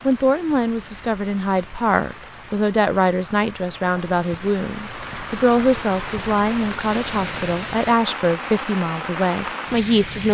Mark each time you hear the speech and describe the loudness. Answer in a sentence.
The speech can be heard from 0.1 to 10.3 s, at a steady volume.